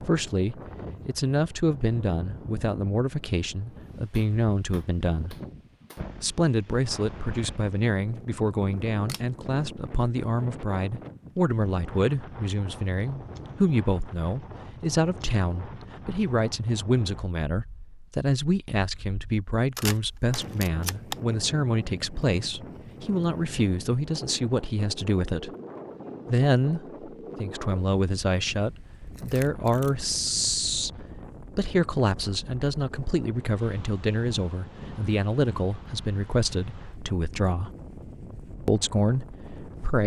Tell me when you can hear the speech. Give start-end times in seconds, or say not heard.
0.0-5.3, 6.2-25.5, 26.2-30.9, 31.6-37.7, 38.6-40.0.